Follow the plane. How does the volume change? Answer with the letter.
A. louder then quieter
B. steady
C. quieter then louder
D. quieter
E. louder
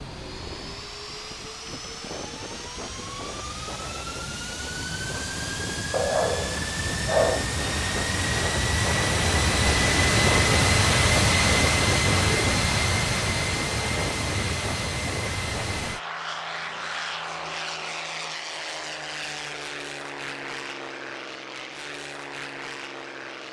A.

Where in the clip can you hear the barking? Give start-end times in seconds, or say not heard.
5.9-7.4.